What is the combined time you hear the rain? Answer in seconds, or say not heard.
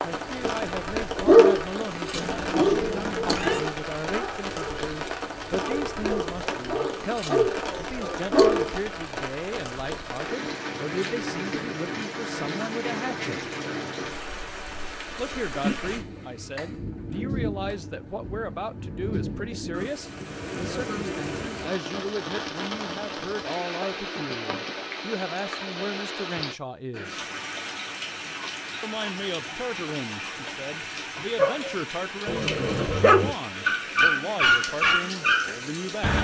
36 s.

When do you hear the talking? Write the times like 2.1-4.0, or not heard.
0.0-13.4, 15.2-27.2, 28.8-36.1.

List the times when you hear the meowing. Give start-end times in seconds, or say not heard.
2.1-3.6.